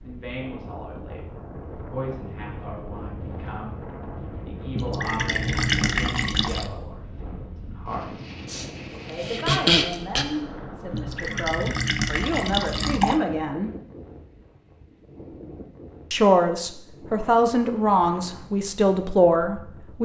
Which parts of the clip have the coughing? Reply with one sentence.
The coughing can be heard from 8.4 to 10.2 s.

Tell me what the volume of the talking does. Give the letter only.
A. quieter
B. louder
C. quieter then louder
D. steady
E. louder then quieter
B.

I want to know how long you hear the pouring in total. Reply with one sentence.
You can hear the pouring for 4 seconds altogether.